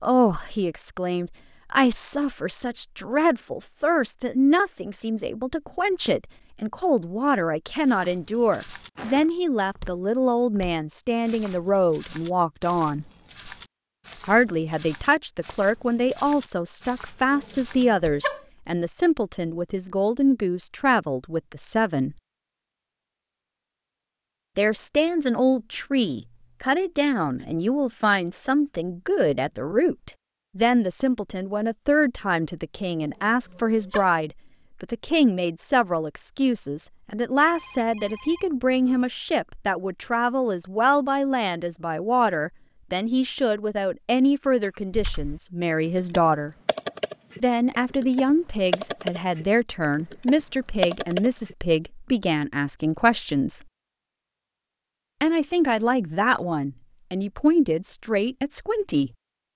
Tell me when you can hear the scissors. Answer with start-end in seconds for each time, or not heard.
not heard.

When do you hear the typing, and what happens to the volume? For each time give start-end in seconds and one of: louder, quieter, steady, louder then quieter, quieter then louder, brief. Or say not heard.
44.9-51.5 louder.